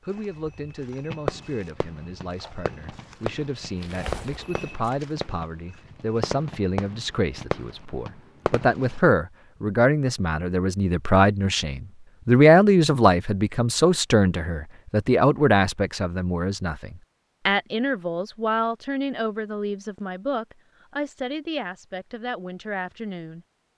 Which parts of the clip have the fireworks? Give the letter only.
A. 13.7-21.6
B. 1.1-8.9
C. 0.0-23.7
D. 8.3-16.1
B.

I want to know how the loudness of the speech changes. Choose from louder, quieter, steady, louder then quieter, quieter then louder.
louder then quieter.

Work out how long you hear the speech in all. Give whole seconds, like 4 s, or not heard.
24 s.